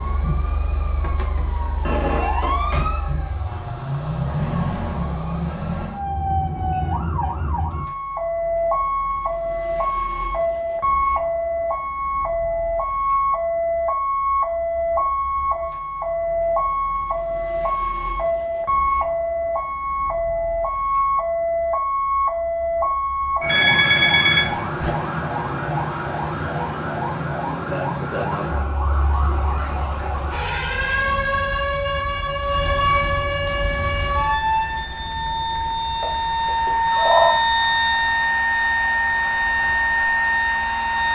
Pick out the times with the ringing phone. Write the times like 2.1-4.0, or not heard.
1.9-2.5, 23.4-24.9, 36.0-37.4.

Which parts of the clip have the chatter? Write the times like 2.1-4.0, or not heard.
not heard.